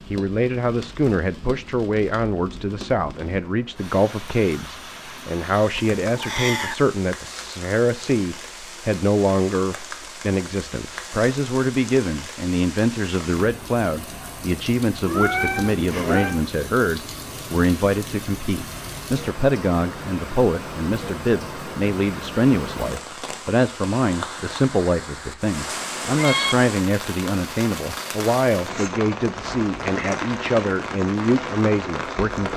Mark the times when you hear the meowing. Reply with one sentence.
The meowing can be heard from 5.8 to 6.8 s, from 15.1 to 16.4 s and from 25.6 to 26.6 s.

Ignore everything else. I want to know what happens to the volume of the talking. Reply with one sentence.
The volume of the talking stays about the same.